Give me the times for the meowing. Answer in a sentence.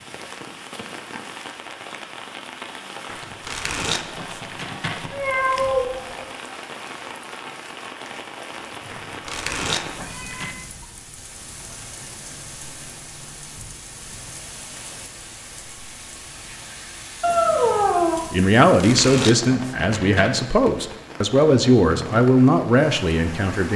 The meowing can be heard from 5.1 to 6.2 s, from 9.8 to 10.7 s and from 17.2 to 18.2 s.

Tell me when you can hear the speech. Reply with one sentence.
The speech can be heard from 18.3 to 23.7 s.